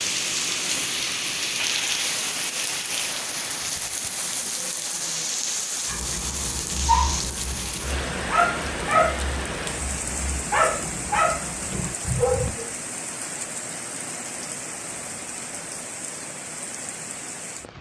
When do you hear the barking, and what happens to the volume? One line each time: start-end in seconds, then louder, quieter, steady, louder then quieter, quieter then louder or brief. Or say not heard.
5.8-12.7 steady.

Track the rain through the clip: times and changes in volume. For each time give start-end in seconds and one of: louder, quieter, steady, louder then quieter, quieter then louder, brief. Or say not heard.
0.0-17.7 quieter.